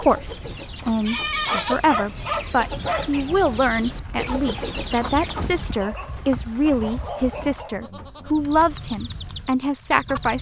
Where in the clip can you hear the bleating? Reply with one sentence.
The bleating can be heard from 0.8 to 2.6 s and from 7.7 to 8.4 s.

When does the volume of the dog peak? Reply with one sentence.
The loudest moment of the dog is at 2 seconds.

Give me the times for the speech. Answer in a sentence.
You can hear the speech from 0.0 to 10.3 s.